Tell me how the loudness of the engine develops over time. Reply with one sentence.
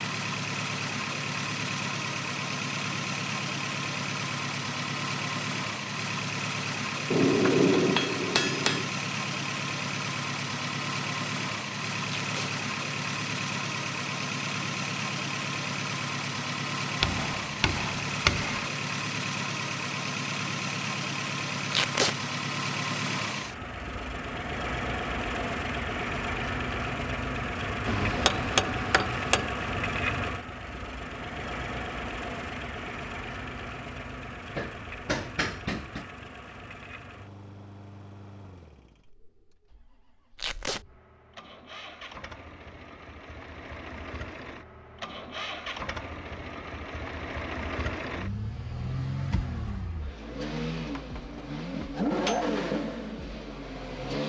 The volume of the engine goes down, then up.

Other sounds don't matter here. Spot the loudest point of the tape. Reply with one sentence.
The volume of the tape peaks at 22 seconds.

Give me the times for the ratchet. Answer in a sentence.
The ratchet can't be heard in this clip.